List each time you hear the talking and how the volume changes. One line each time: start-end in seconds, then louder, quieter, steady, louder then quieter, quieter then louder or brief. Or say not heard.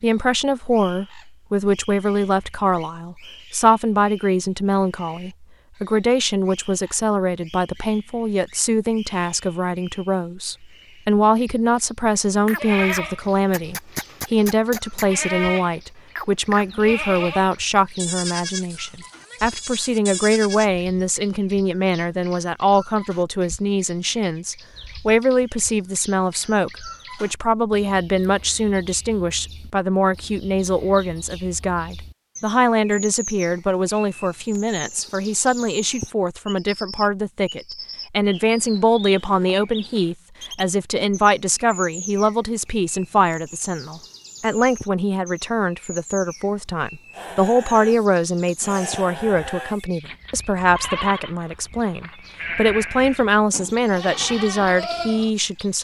0.0-55.7 steady.